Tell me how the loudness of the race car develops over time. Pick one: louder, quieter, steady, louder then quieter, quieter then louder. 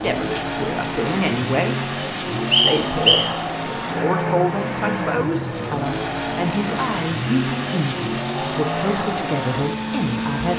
steady.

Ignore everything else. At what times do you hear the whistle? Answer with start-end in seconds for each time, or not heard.
2.5-3.3.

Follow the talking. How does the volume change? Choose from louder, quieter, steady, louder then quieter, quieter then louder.
steady.